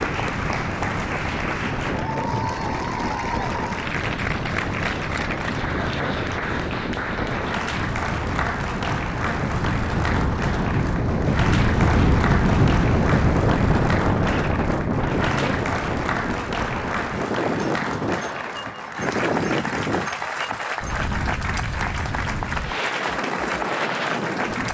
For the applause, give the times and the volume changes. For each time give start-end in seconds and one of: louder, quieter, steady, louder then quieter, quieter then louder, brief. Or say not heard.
0.0-24.6 steady.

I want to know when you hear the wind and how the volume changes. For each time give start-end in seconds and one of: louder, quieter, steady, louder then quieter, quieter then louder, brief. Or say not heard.
0.0-24.6 louder then quieter.